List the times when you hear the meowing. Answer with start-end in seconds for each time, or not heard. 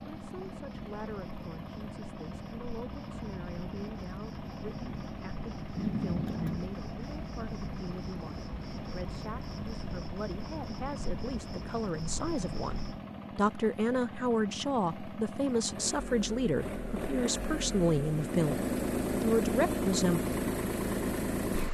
5.8-6.7.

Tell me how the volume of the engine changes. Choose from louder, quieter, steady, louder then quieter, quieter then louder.
louder.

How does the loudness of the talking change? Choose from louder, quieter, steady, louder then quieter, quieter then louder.
louder.